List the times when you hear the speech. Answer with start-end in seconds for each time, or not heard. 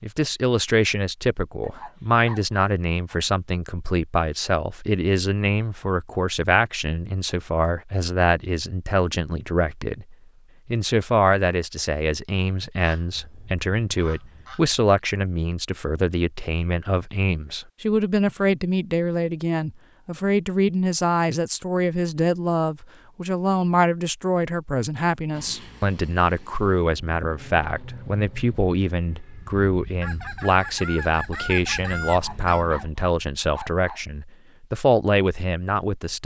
0.0-36.2.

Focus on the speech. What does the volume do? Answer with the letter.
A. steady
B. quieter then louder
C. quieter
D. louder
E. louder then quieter
A.